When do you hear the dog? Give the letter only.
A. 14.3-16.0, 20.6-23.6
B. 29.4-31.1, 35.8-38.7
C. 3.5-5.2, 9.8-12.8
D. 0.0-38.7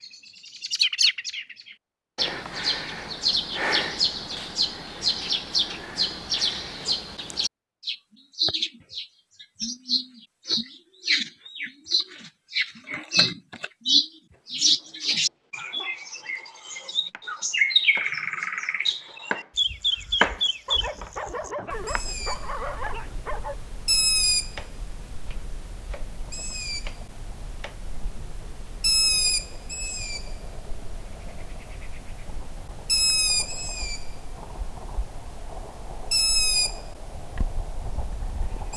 A.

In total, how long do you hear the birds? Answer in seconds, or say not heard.
39 s.